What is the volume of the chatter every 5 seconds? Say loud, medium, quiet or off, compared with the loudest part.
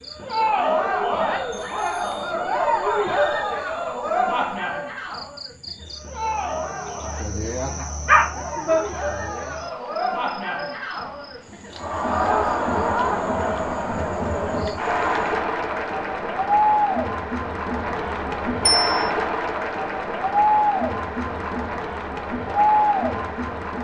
loud, medium, loud, loud, loud.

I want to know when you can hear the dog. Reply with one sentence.
The dog can be heard from 7.8 to 8.8 s.